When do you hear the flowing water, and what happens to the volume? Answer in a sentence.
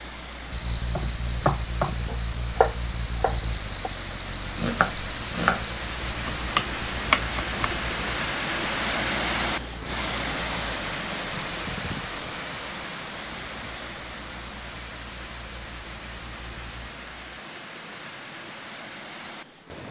The flowing water can be heard from 0.0 to 19.8 s, getting louder then quieter.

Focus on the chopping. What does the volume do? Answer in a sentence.
The loudness of the chopping stays about the same.